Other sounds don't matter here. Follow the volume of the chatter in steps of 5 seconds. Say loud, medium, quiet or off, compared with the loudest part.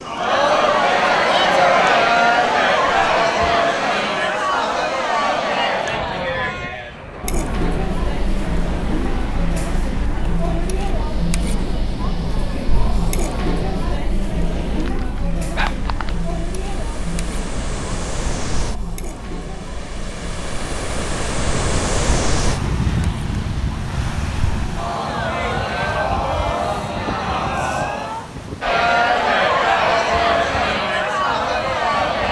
loud, medium, medium, quiet, quiet, loud, loud.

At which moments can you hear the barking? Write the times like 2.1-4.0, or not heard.
14.7-16.3.